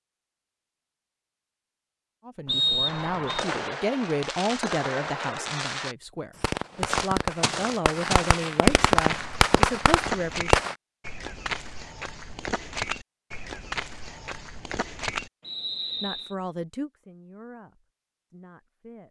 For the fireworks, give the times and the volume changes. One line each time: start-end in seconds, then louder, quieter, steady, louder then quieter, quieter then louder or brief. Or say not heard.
2.9-10.8 louder.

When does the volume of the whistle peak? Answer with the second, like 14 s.
3 s.